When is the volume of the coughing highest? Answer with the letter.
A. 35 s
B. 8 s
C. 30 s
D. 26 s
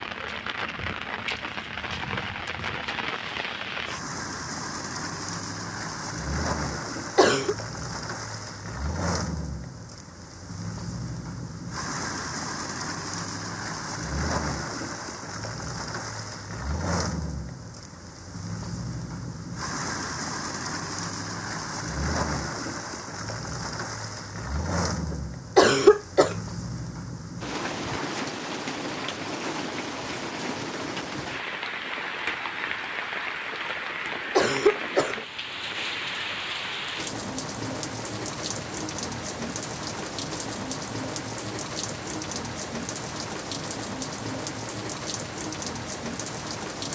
D.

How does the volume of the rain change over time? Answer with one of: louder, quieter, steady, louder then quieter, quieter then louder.
steady.